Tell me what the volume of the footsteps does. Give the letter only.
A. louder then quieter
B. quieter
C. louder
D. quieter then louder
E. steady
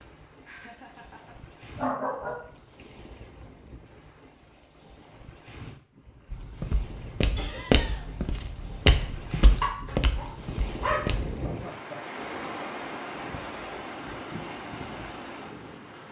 A.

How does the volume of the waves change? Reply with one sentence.
The loudness of the waves goes up.